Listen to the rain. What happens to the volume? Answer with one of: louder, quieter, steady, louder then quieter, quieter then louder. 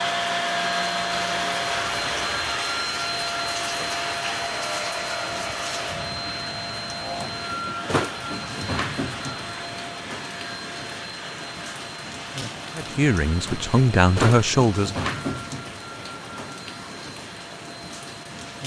steady.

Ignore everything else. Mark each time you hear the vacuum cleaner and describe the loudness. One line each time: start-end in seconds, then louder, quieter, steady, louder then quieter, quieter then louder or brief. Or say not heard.
0.0-18.6 quieter.